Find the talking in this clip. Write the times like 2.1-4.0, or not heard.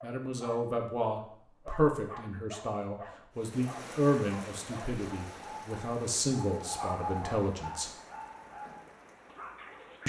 0.0-7.9.